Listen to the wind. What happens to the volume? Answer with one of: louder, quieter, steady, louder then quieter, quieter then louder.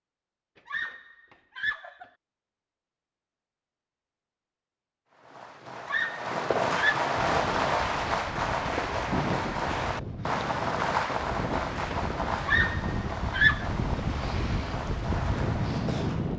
louder.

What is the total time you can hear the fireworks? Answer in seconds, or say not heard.
11 s.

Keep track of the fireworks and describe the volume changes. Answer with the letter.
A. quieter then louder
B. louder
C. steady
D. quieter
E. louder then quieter
D.